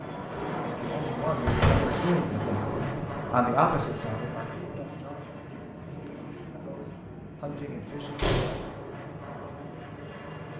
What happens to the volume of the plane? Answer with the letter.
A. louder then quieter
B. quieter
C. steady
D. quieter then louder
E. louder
B.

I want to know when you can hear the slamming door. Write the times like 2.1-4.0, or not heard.
1.4-1.9, 8.2-8.7.